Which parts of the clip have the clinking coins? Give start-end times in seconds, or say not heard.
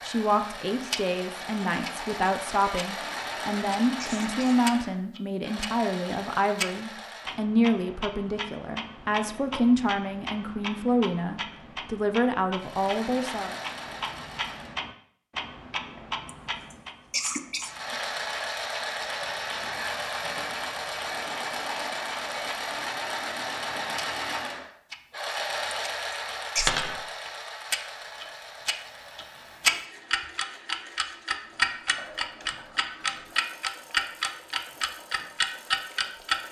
26.6-27.0.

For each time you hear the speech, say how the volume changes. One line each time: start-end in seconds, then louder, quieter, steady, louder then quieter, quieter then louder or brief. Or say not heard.
0.1-13.6 steady.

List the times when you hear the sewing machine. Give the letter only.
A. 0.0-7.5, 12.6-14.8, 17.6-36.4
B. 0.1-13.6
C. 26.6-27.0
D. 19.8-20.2
A.